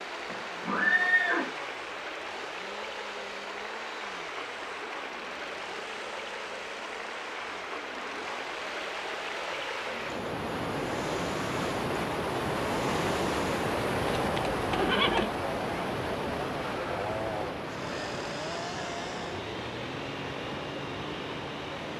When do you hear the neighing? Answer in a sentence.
The neighing can be heard from 0.2 to 1.5 s and from 14.2 to 15.3 s.